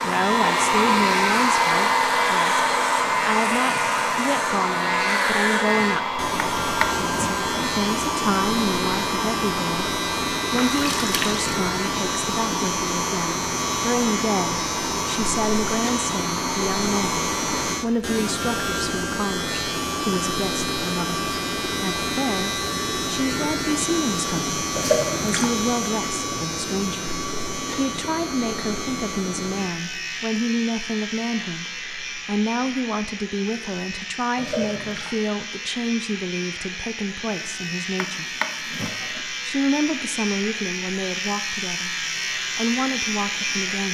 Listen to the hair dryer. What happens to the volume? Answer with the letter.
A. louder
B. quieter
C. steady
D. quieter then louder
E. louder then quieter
B.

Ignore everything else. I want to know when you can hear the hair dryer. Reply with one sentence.
You can hear the hair dryer from 0.0 to 17.8 s.